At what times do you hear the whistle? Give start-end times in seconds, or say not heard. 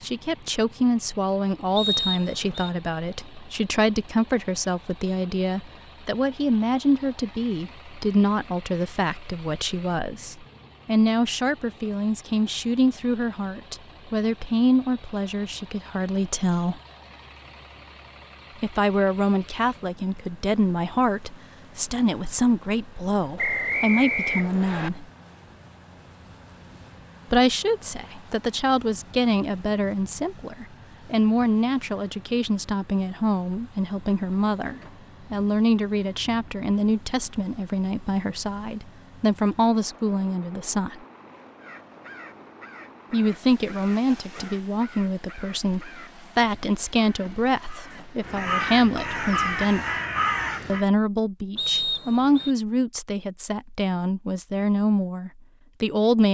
1.8-2.7, 23.4-24.9, 51.5-52.5.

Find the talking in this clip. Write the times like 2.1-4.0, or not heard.
0.0-16.8, 18.6-25.1, 27.3-41.0, 43.1-49.9, 50.6-56.2.